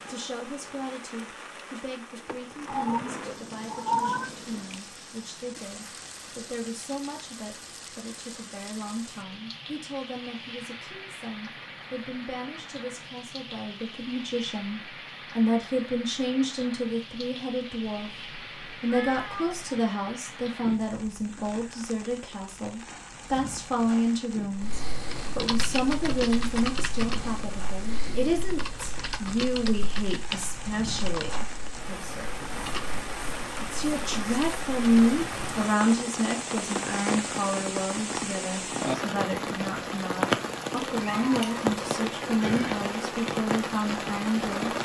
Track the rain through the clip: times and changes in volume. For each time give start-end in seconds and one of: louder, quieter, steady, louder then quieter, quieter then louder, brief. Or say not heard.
0.0-44.8 louder.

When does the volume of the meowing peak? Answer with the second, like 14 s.
4 s.